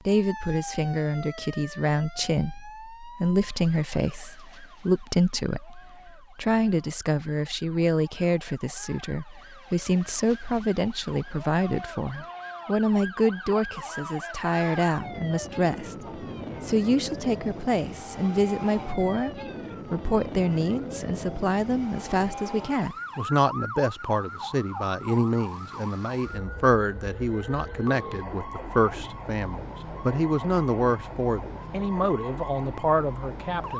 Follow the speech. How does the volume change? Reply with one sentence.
The volume of the speech stays about the same.